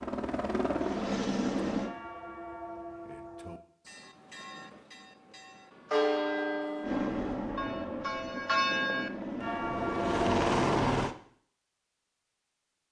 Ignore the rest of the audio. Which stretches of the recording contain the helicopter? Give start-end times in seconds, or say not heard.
0.0-1.9, 6.8-11.2.